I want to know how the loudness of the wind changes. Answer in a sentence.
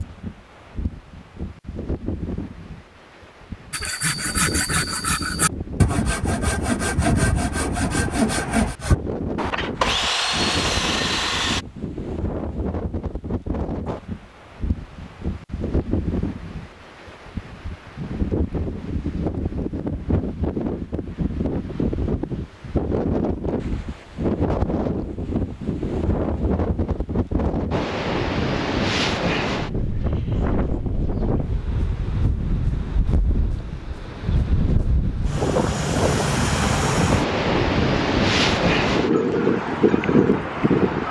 The loudness of the wind goes up.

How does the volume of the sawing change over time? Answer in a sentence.
The loudness of the sawing stays about the same.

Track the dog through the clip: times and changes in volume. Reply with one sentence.
You can't hear the dog here.